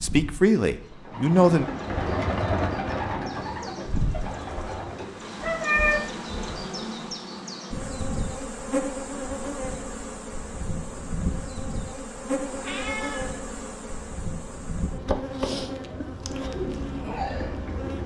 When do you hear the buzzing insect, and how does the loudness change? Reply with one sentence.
The buzzing insect can be heard from 0.0 to 18.0 s, getting louder.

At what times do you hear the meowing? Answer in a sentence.
The meowing can be heard from 5.4 to 6.0 s and from 12.4 to 13.3 s.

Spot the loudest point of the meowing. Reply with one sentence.
The volume of the meowing peaks at 6 seconds.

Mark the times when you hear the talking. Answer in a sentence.
The talking can be heard from 0.0 to 1.6 s.